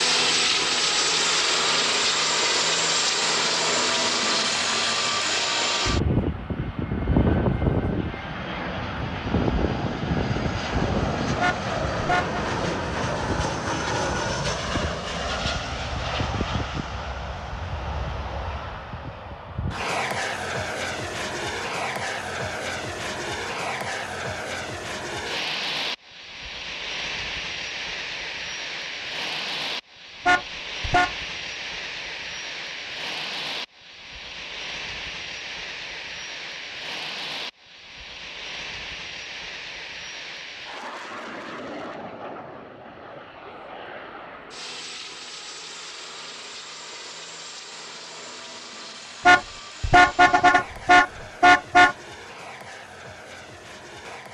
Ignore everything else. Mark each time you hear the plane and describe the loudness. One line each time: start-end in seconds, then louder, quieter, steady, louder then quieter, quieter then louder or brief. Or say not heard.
0.0-54.2 quieter.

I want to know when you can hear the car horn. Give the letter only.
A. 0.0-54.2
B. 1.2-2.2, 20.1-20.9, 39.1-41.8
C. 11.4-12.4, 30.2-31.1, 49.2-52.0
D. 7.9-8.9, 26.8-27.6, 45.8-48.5
C.